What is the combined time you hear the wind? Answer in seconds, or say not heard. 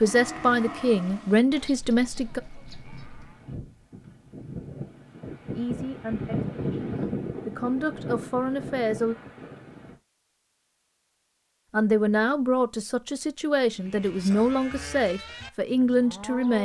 10 s.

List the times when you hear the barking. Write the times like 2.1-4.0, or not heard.
not heard.